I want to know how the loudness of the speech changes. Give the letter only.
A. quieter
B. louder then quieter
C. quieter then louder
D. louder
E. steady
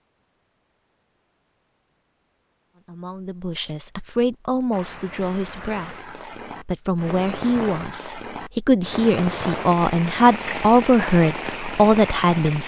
D.